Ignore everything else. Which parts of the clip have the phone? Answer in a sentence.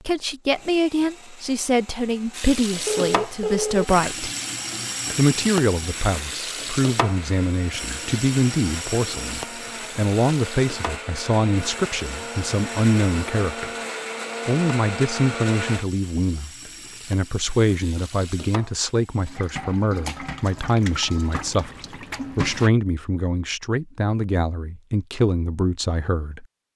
The phone can be heard from 2.9 to 3.9 s.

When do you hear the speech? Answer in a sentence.
The speech can be heard from 0.1 to 4.3 s, from 5.2 to 13.7 s, from 14.4 to 16.5 s, from 17.1 to 21.7 s and from 22.4 to 26.4 s.